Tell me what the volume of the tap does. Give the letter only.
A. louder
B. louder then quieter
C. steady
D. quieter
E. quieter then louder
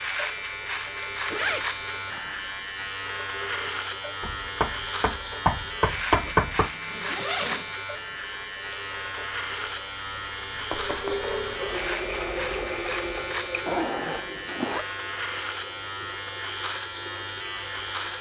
B.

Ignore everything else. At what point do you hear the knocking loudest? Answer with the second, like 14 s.
6 s.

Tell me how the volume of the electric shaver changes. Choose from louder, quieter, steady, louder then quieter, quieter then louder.
steady.